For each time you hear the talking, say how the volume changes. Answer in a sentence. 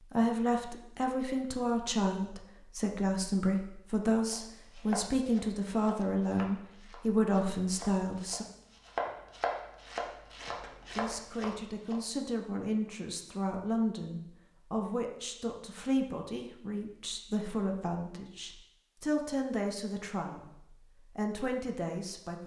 The talking can be heard from 0.0 to 8.4 s, at a steady volume; and from 10.9 to 22.4 s, at a steady volume.